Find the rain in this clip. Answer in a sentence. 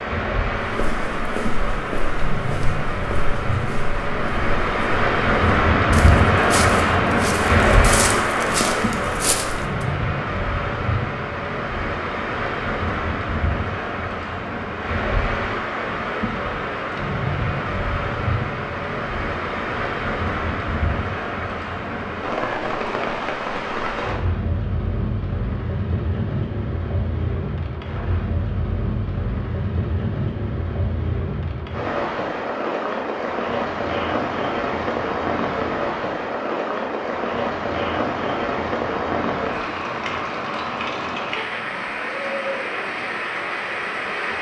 You can hear the rain from 0.0 to 44.3 s.